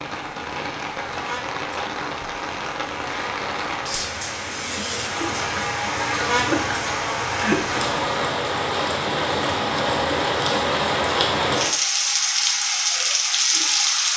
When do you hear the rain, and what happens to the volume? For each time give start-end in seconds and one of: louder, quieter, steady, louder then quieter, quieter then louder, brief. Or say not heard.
0.0-14.1 louder.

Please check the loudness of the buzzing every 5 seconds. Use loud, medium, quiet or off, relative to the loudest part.
medium, loud, off.